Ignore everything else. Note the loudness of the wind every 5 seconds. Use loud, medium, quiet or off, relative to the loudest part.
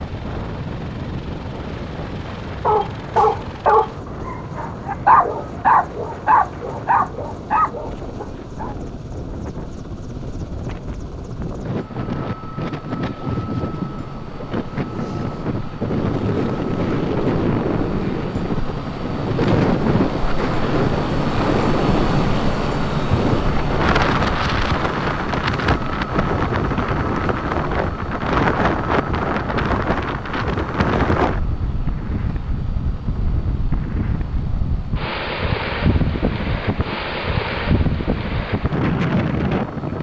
medium, quiet, medium, loud, loud, loud, loud, loud.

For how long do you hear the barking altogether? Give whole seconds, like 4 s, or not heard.
6 s.